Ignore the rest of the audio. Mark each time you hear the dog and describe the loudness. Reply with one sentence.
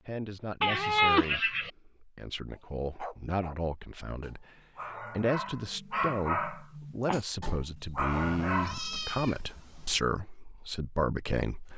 You can hear the dog from 2.5 to 9.0 s, getting louder.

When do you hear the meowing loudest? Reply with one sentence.
The loudest moment of the meowing is at 1 second.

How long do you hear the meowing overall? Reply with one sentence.
The meowing can be heard for 3 seconds in total.